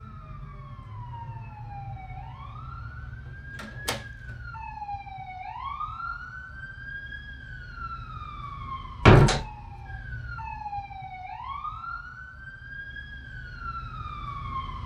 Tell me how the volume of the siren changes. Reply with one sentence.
The volume of the siren stays about the same.